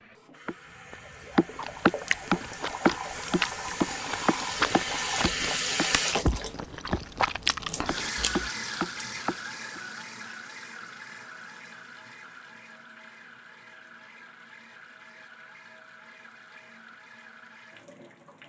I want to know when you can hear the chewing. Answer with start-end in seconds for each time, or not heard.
1.5-8.5.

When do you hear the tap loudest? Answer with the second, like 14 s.
6 s.